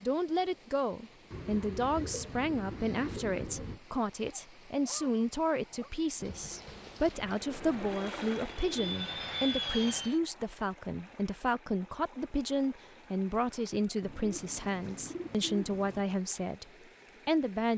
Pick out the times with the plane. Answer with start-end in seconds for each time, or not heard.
7.4-10.2.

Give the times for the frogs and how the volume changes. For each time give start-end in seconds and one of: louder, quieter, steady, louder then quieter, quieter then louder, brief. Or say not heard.
not heard.